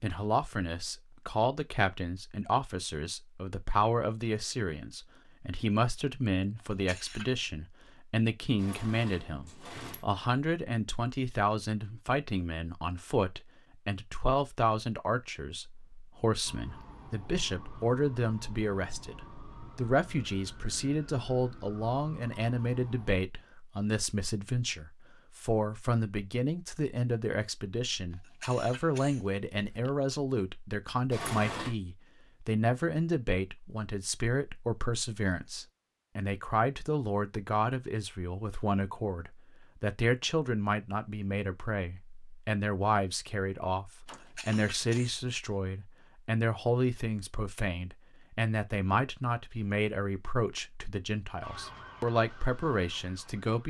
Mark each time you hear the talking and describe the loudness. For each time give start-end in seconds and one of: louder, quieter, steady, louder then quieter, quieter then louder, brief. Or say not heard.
0.0-53.6 steady.